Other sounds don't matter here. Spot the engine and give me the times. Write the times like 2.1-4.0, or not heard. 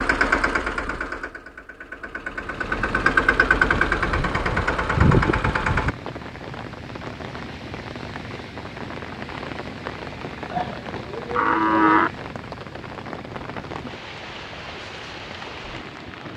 0.0-6.0.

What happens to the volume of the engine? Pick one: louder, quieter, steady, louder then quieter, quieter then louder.
quieter then louder.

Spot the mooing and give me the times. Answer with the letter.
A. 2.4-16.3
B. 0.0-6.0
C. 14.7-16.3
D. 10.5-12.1
D.